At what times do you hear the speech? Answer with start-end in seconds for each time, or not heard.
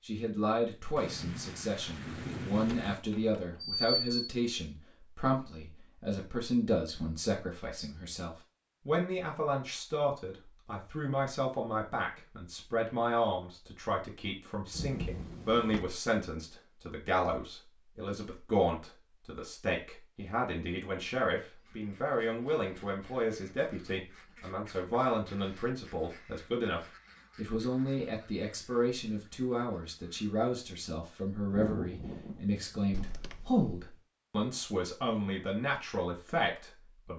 0.1-37.1.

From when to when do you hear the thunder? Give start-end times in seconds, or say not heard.
0.9-3.0, 14.7-15.8, 31.5-33.9.